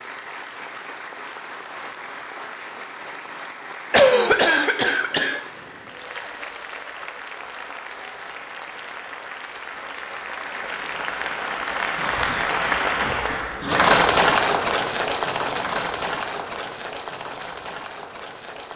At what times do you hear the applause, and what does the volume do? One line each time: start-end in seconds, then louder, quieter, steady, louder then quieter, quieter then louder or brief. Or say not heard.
0.0-18.7 louder then quieter.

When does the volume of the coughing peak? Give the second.
4 s.